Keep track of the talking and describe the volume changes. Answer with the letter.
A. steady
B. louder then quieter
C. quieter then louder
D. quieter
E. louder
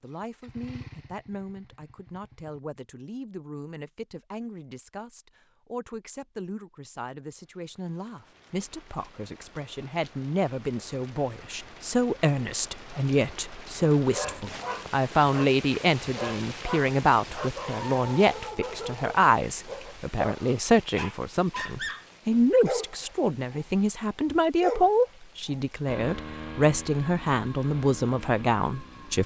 E.